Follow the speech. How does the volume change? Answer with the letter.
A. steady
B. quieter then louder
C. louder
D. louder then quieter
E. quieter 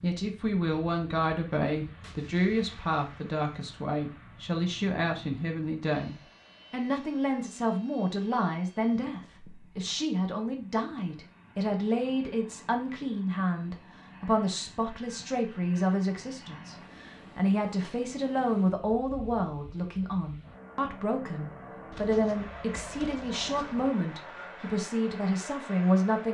A.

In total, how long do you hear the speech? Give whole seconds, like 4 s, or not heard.
26 s.